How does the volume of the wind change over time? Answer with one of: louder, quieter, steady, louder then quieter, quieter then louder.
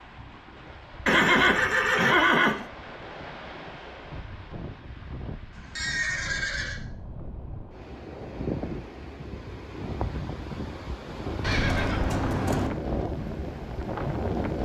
louder.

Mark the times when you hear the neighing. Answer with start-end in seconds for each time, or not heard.
1.1-2.6, 5.5-6.8, 11.4-12.7.